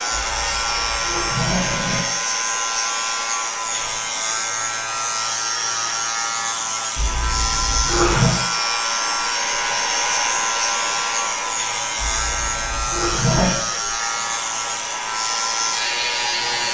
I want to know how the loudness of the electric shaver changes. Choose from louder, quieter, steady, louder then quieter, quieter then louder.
steady.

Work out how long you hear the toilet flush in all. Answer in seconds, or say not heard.
5 s.